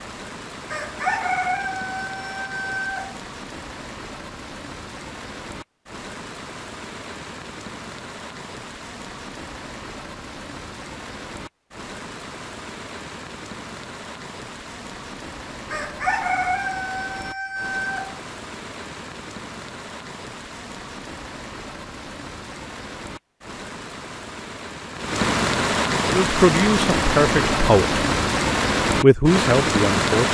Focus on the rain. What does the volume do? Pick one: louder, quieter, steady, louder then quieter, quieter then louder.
louder.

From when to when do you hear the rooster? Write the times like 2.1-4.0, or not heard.
0.7-3.2, 15.7-18.2.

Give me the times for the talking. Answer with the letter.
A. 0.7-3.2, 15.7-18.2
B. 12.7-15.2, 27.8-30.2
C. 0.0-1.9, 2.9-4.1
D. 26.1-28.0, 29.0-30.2
D.